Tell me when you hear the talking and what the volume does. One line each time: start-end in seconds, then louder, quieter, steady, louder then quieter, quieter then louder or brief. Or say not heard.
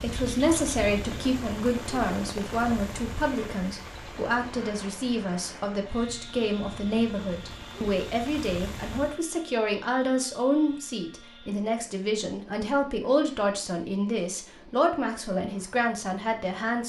0.0-16.8 steady.